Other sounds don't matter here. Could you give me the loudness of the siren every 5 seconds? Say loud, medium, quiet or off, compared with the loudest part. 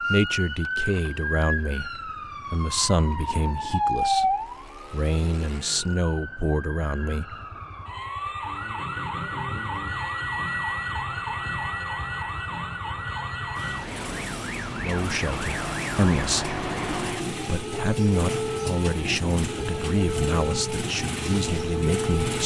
loud, medium, loud, loud, loud.